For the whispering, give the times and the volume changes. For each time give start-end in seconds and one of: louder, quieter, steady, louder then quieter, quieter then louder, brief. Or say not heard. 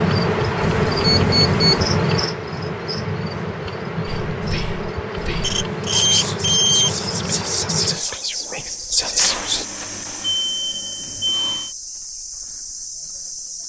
4.0-9.7 louder.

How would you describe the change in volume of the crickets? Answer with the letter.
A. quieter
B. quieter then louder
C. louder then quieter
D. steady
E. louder
A.